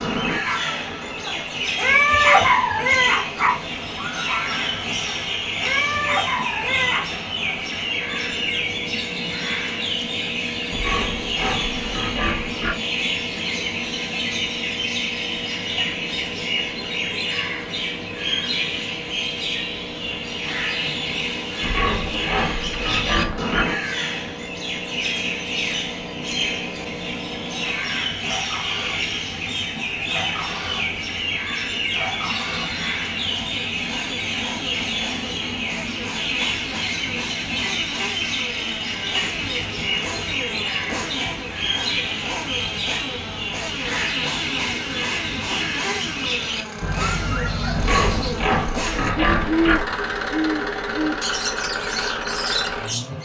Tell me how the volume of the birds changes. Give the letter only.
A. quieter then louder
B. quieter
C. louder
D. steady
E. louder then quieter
D.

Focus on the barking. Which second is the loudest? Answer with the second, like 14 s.
2 s.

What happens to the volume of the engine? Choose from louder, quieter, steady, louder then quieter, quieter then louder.
louder.